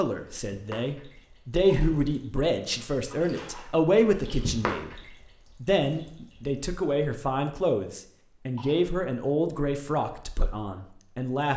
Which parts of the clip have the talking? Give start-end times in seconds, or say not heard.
0.0-11.5.